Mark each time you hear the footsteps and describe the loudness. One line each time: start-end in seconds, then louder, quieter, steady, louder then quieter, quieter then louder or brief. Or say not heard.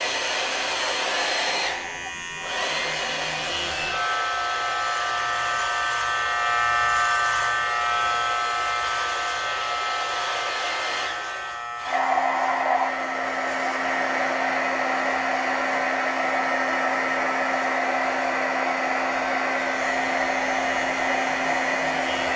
not heard.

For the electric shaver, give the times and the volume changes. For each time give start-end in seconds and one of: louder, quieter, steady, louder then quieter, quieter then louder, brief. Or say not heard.
0.0-22.3 louder then quieter.